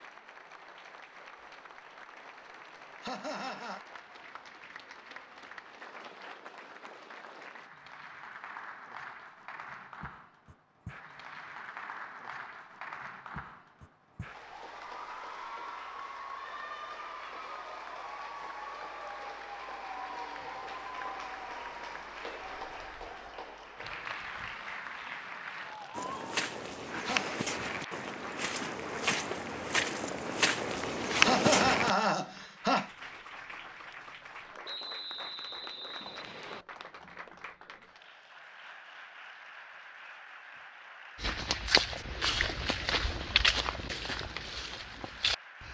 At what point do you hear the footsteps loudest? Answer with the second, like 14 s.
31 s.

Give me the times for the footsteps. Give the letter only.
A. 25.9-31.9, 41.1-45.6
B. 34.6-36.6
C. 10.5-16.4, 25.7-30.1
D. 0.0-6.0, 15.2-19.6
A.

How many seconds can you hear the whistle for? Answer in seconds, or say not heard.
2 s.